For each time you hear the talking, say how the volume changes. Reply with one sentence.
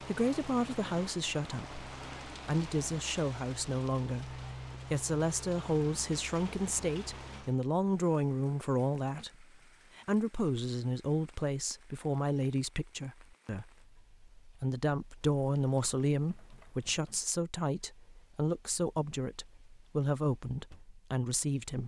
The talking can be heard from 0.1 to 21.8 s, at a steady volume.